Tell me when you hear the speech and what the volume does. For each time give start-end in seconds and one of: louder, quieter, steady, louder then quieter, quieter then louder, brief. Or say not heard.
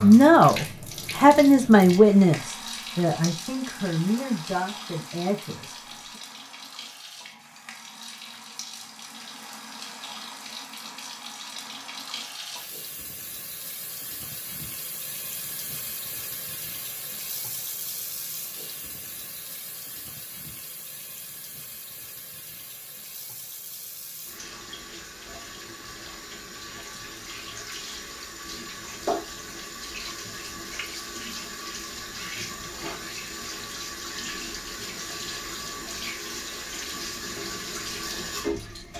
0.0-5.8 quieter.